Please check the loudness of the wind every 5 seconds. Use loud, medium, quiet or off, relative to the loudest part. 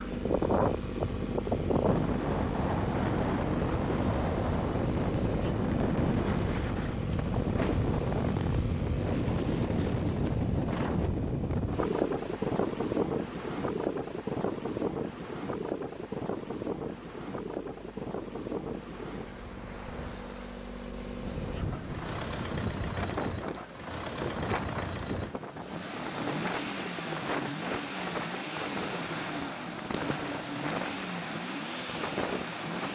loud, loud, loud, medium, medium, medium, medium.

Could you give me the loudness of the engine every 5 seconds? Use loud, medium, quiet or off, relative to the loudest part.
loud, loud, medium, quiet, loud, loud, loud.